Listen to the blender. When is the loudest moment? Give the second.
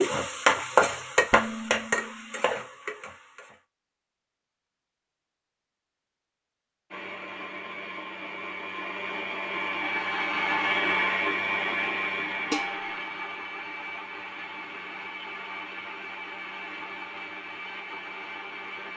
11 s.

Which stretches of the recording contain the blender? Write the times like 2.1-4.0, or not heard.
6.9-18.9.